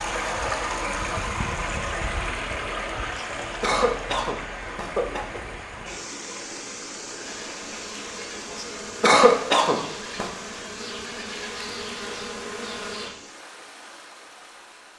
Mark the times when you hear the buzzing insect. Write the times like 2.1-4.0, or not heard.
7.2-13.2.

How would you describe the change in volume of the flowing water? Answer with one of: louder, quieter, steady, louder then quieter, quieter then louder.
quieter.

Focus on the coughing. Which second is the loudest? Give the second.
9 s.